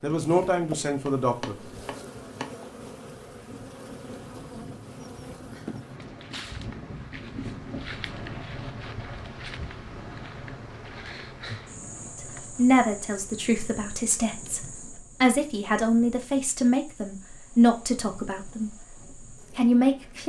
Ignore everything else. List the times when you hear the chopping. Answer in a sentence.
You can hear the chopping from 1.0 to 2.5 s.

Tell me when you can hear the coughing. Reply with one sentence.
The coughing can't be heard in this clip.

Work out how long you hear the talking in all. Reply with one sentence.
You can hear the talking for 9 seconds altogether.